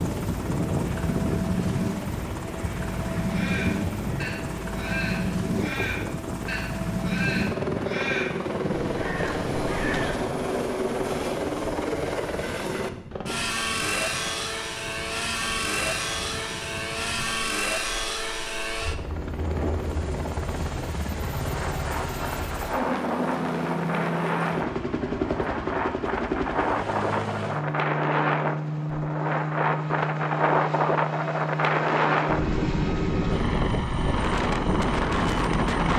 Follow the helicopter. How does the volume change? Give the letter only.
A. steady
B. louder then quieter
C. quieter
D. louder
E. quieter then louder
A.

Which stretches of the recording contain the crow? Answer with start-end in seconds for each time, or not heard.
3.2-10.2.